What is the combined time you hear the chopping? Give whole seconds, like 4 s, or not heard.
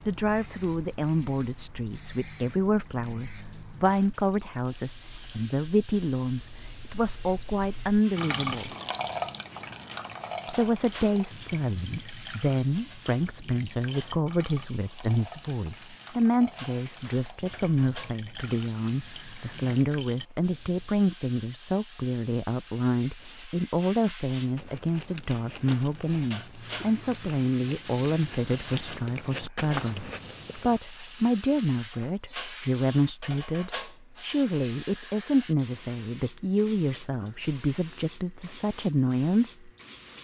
not heard.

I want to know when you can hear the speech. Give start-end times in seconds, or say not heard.
0.0-8.7, 10.4-39.7.